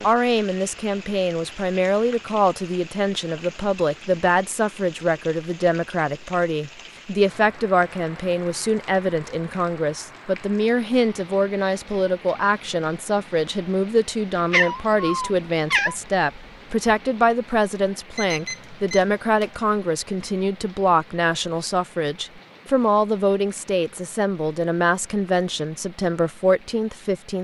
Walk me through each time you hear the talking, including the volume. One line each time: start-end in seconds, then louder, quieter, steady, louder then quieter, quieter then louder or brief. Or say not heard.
0.0-27.3 steady.